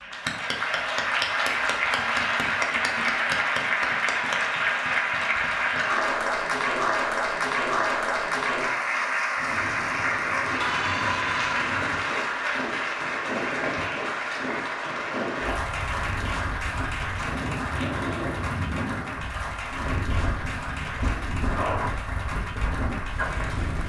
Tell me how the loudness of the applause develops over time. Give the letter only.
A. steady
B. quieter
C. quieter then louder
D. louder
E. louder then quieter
B.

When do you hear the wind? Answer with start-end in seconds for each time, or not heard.
9.3-23.8.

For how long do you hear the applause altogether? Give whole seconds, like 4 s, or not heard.
24 s.